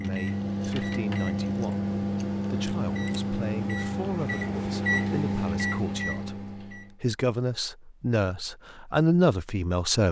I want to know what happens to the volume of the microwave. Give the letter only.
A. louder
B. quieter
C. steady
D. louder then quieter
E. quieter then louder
C.